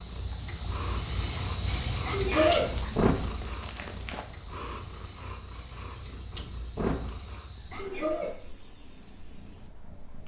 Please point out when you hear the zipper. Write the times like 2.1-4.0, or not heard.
2.3-4.2.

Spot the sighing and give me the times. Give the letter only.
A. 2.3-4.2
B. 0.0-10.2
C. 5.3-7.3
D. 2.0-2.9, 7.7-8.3
D.